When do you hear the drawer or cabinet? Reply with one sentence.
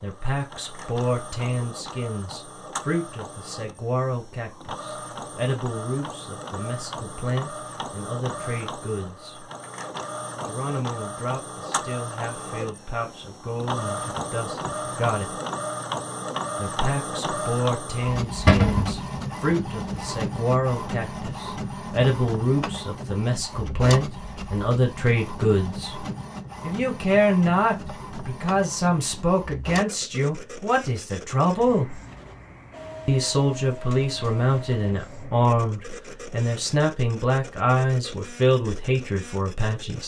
The drawer or cabinet can be heard from 18.4 to 18.9 s.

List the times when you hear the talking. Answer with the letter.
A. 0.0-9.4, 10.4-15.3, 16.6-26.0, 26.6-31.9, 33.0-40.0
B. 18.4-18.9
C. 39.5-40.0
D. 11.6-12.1
A.